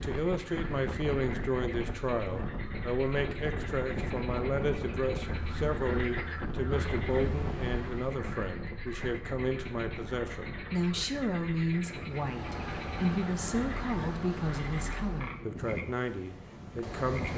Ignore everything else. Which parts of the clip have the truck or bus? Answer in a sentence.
You can hear the truck or bus from 5.2 to 8.2 s and from 11.9 to 15.4 s.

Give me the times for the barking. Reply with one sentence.
The barking can't be heard in this clip.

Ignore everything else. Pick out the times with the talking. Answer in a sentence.
You can hear the talking from 0.0 to 17.3 s.